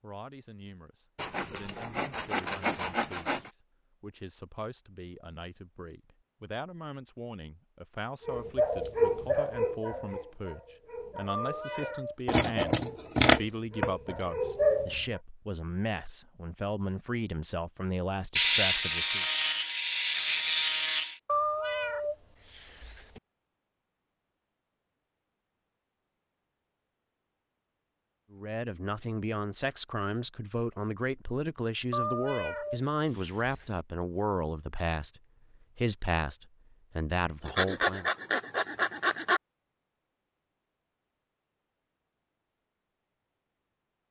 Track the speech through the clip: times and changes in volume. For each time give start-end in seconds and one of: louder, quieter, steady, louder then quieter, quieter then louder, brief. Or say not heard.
0.0-19.2 louder
28.3-38.1 steady.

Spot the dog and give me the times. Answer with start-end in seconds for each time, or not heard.
8.2-15.0.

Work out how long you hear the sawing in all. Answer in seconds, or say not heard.
7 s.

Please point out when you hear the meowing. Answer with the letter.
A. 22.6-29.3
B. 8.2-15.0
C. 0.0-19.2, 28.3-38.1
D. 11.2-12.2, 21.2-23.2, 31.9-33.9
D.